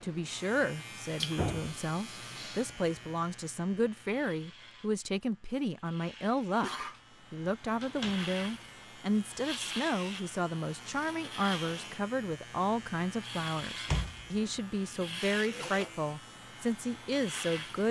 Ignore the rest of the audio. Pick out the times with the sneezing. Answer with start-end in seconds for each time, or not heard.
1.1-2.8, 6.1-7.0, 15.4-16.0.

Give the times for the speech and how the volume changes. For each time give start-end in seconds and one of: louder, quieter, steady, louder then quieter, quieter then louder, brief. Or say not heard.
0.0-17.8 steady.